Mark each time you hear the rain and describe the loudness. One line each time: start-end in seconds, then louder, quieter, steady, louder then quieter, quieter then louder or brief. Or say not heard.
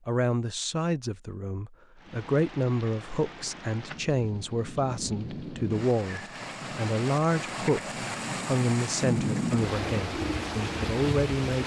1.9-11.6 louder.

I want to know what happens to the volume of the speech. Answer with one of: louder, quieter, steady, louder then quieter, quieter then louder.
steady.